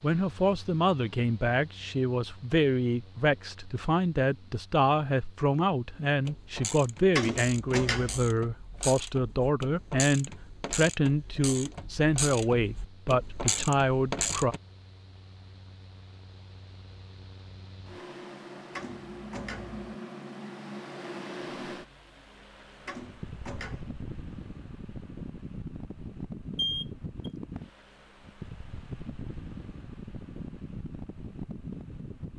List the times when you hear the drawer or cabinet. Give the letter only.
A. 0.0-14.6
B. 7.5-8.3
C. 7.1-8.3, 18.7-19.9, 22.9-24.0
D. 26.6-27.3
C.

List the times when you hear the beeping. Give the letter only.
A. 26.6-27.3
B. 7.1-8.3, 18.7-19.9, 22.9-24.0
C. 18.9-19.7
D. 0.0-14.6
A.